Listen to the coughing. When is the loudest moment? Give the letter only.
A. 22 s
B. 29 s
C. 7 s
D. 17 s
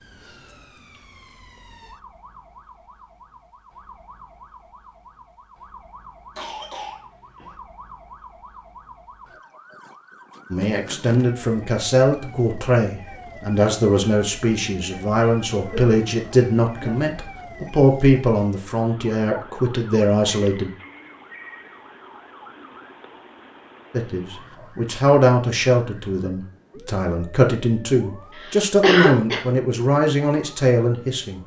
B.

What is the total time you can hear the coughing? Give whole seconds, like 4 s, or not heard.
4 s.